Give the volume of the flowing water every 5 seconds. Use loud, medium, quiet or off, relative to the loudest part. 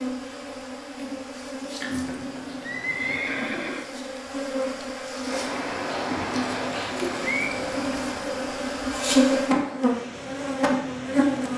off, loud, medium.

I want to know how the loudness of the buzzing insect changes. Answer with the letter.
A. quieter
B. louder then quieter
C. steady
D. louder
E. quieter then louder
D.